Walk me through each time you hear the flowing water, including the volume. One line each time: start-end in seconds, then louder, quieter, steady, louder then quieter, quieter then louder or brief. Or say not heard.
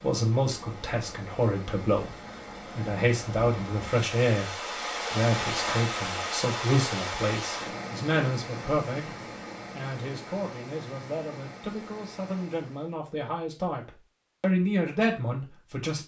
0.0-12.9 louder then quieter.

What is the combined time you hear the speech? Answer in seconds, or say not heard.
16 s.